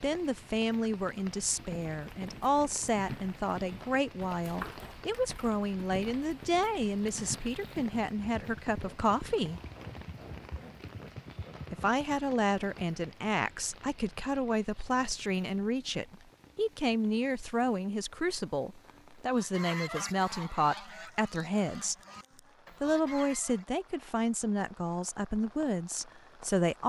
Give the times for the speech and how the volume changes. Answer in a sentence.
You can hear the speech from 0.0 to 9.6 s, at a steady volume; from 11.7 to 21.9 s, at a steady volume; and from 22.8 to 26.8 s, getting quieter.